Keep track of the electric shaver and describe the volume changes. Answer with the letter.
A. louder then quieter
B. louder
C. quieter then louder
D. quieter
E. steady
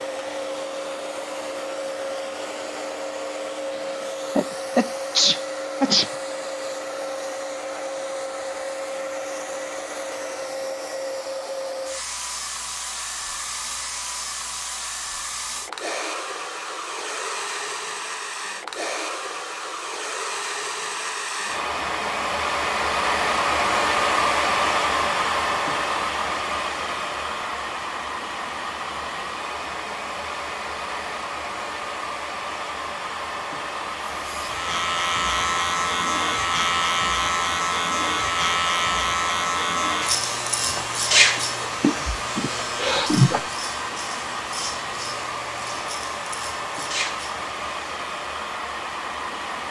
D.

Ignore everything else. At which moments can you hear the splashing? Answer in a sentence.
You can't hear the splashing here.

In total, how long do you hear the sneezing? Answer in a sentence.
The sneezing can be heard for 4 seconds in total.